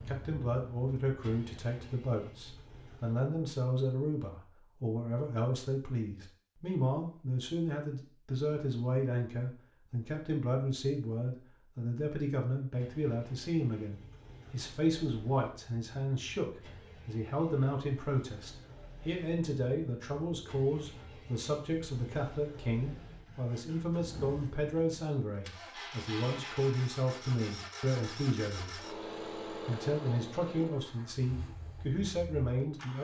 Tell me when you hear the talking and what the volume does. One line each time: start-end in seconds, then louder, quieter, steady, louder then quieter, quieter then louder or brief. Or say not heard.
0.0-32.9 steady.